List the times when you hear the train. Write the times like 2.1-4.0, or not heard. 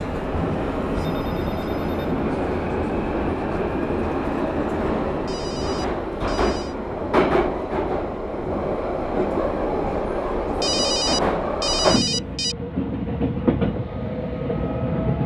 0.0-15.2.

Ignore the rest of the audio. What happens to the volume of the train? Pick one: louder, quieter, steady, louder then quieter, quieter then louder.
steady.